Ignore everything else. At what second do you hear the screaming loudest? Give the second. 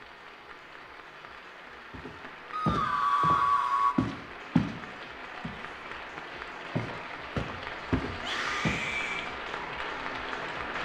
3 s.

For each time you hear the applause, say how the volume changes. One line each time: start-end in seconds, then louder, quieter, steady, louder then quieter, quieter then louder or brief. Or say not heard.
0.0-10.8 louder.